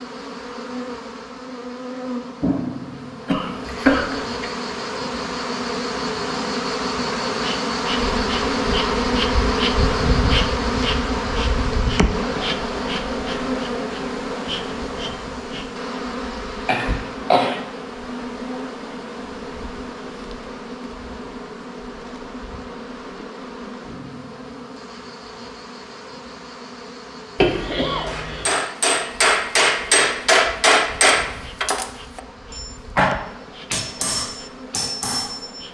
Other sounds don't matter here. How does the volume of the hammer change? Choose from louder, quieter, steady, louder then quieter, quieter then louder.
quieter.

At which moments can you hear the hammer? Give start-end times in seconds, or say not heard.
28.1-35.6.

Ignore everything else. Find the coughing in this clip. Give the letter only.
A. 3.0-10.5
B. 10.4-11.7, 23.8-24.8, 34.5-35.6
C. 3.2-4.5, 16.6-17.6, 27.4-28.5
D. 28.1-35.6
C.